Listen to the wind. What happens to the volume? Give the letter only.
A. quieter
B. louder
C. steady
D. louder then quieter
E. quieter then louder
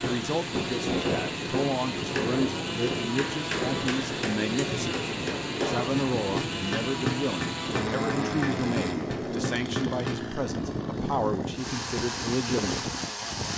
C.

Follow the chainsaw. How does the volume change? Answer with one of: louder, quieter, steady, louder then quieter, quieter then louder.
steady.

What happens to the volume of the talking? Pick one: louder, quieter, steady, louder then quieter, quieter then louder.
steady.